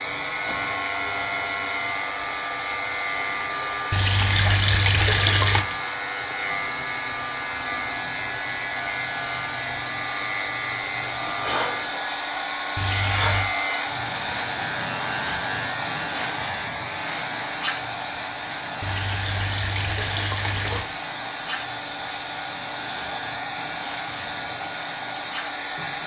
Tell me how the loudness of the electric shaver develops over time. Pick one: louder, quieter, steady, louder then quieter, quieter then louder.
quieter.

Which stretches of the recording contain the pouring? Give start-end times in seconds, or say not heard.
3.9-5.7, 12.8-13.6, 18.8-20.9.